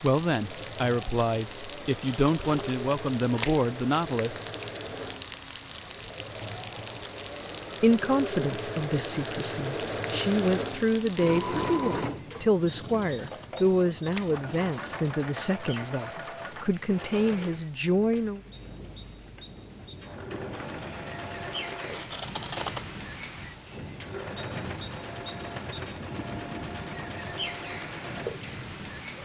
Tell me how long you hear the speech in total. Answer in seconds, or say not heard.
15 s.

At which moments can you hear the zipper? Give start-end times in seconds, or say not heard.
not heard.